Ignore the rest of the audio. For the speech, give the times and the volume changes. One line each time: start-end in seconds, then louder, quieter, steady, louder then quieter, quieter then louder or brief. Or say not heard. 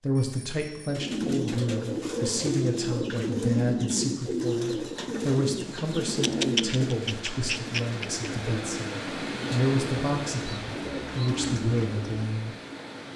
0.0-12.6 steady.